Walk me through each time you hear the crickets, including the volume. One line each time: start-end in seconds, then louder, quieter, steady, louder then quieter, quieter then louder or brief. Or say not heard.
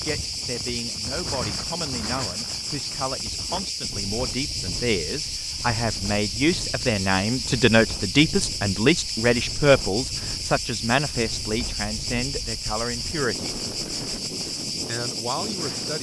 0.0-15.9 steady.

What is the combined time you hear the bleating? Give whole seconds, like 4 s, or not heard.
not heard.